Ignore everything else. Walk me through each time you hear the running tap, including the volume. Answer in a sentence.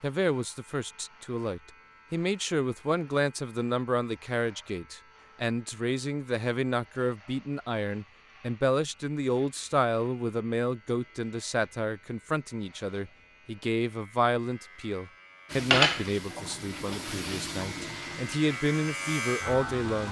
You can hear the running tap from 15.5 to 20.0 s, getting quieter.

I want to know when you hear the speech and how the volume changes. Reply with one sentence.
You can hear the speech from 0.0 to 20.0 s, at a steady volume.